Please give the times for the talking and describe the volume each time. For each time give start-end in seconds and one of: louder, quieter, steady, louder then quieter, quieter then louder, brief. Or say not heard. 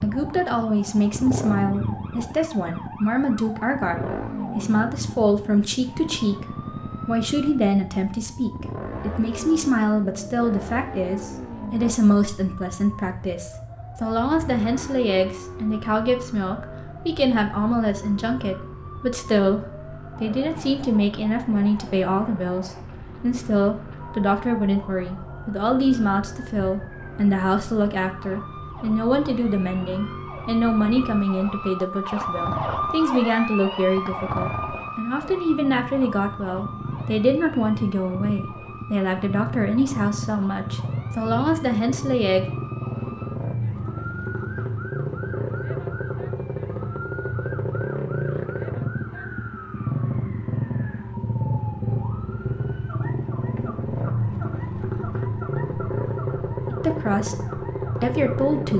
0.0-42.5 steady
56.7-58.7 brief.